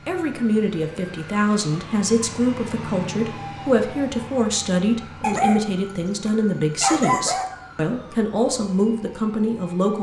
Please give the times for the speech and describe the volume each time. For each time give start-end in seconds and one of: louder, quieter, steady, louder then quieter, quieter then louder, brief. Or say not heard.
0.1-9.9 steady.